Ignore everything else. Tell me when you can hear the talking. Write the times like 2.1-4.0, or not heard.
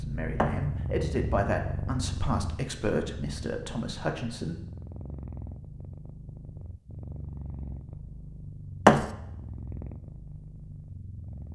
0.0-4.6.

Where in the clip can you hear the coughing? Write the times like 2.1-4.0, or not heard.
not heard.